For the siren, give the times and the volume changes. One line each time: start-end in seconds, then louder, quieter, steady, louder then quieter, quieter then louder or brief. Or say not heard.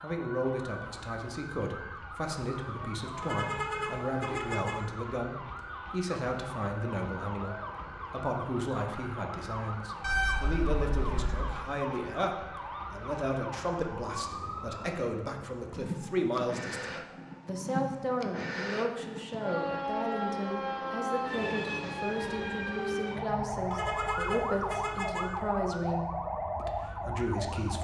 0.0-27.7 louder.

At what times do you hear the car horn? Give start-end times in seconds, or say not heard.
3.2-4.8, 10.0-11.5, 23.7-25.2.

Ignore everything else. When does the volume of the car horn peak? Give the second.
10 s.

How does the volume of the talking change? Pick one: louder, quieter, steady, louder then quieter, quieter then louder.
steady.